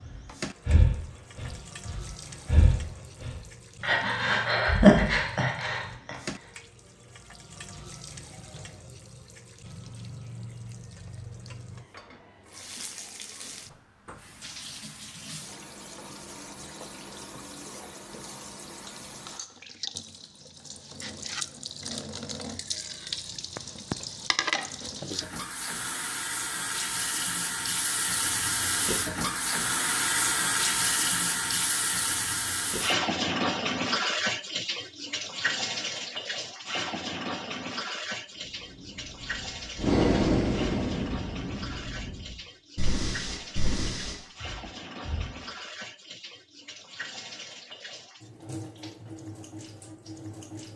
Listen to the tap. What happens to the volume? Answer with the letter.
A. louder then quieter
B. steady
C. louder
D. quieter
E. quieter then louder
A.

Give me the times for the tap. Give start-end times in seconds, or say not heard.
0.0-50.7.